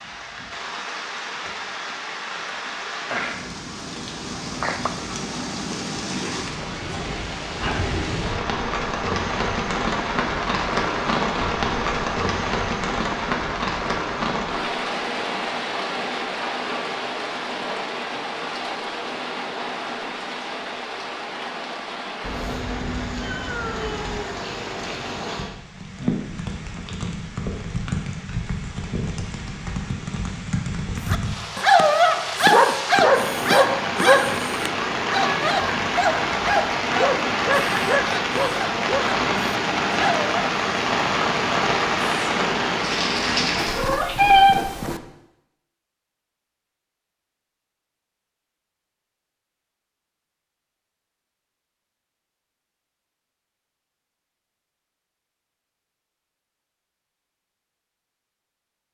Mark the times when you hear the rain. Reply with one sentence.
The rain can be heard from 0.0 to 43.9 s.